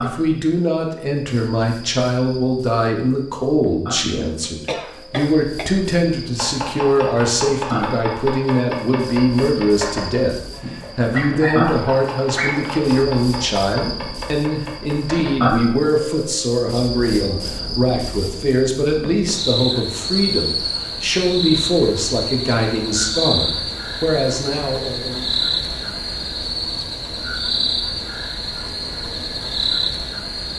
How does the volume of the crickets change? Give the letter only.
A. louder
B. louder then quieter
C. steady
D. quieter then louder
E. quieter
A.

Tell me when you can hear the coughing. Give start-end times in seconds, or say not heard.
4.4-5.7.